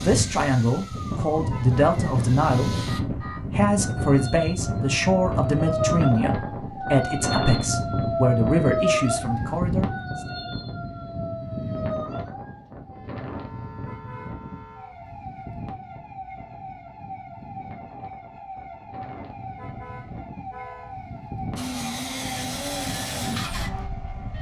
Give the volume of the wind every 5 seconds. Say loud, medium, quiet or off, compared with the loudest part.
loud, loud, medium, quiet, medium.